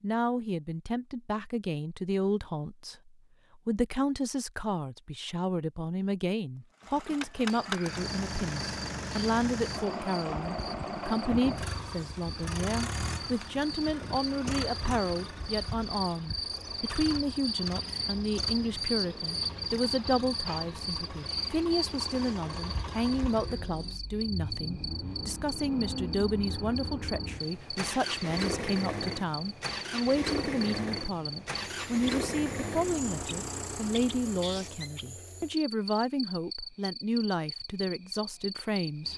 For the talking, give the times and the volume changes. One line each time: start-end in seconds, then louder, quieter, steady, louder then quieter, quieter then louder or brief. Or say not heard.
0.0-39.1 steady.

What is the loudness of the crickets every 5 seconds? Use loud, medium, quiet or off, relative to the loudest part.
off, medium, medium, loud, loud, medium, medium, medium.